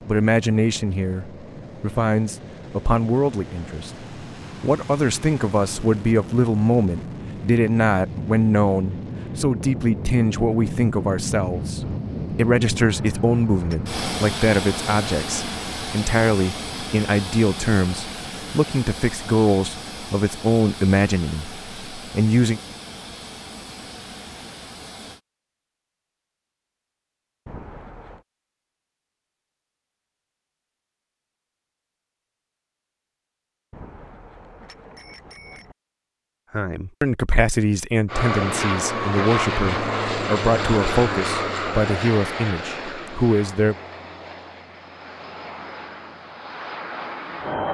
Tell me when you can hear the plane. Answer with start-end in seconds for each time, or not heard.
0.0-25.2, 38.0-47.7.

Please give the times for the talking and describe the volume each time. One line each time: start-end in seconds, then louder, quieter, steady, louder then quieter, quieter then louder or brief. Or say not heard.
0.1-22.6 steady
36.5-43.8 steady.